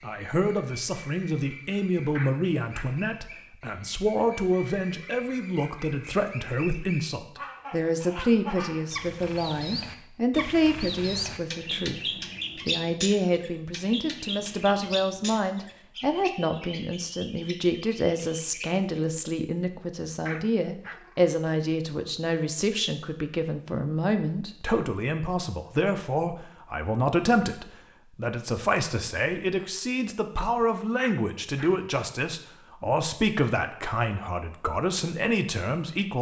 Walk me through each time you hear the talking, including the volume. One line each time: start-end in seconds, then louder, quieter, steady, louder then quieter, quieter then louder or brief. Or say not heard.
0.0-12.0 steady
12.7-36.1 steady.